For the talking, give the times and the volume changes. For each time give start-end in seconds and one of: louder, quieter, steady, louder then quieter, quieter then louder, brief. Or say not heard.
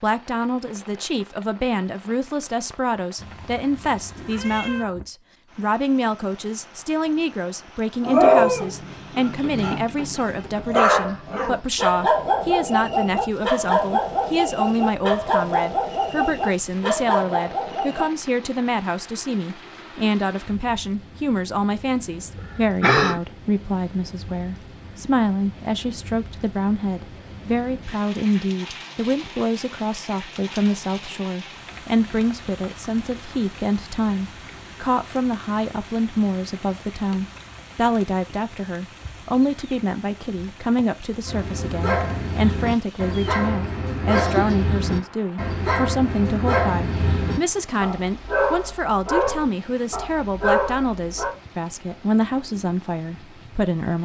0.0-53.9 steady.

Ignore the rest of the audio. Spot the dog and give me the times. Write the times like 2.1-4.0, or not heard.
8.0-18.1, 41.2-51.3.